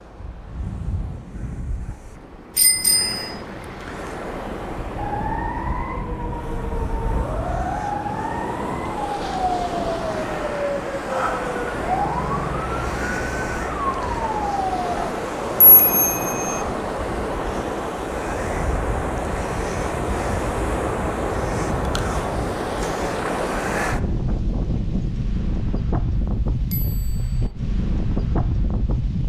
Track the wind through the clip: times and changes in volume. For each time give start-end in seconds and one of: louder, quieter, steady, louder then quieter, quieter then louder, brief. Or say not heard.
0.0-29.2 louder.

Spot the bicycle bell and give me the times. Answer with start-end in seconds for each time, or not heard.
2.5-3.2, 15.6-16.6, 26.7-27.2.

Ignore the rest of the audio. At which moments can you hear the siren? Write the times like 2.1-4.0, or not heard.
5.0-15.1.